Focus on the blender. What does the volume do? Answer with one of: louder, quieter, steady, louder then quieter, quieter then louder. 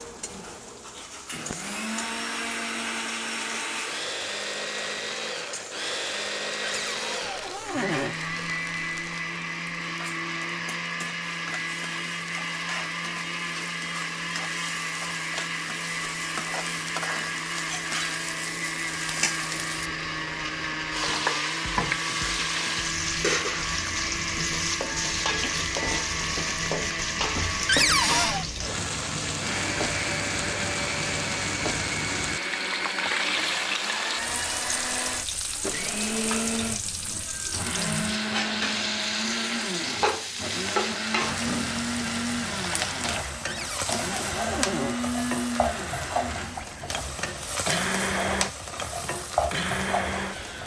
steady.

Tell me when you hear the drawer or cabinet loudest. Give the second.
28 s.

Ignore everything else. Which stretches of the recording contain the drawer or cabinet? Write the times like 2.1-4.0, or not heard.
6.6-8.2, 27.6-28.4, 43.5-45.0.